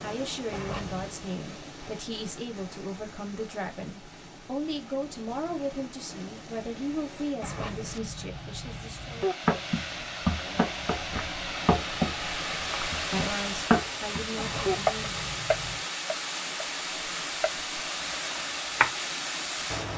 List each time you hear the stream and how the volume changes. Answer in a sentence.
You can hear the stream from 0.0 to 19.9 s, getting louder.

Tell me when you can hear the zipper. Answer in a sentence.
You can hear the zipper from 0.5 to 1.1 s, from 7.4 to 9.2 s and from 14.3 to 15.8 s.